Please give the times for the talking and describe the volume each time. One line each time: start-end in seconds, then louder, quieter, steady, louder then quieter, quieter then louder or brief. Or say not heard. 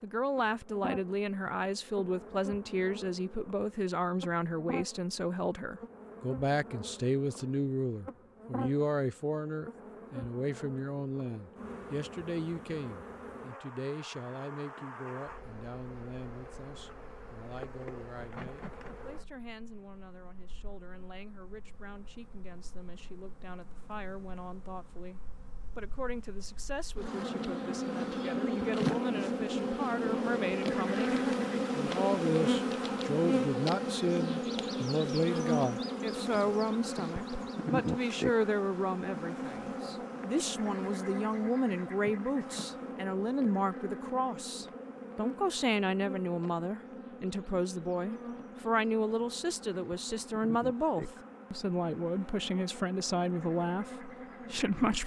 0.0-55.0 quieter then louder.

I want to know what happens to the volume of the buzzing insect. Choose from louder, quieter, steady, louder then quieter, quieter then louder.
louder then quieter.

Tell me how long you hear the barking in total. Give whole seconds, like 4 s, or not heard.
not heard.